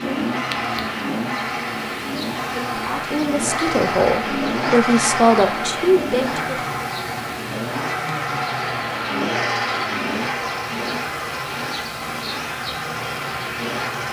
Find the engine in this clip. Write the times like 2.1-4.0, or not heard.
0.0-14.0.